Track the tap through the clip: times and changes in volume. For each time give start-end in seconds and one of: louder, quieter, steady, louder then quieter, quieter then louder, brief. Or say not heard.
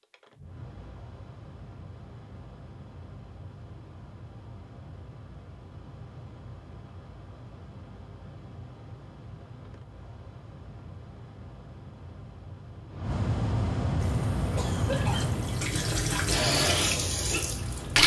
14.0-18.0 louder then quieter.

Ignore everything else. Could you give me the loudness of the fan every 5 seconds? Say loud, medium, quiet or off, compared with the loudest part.
quiet, quiet, loud, loud.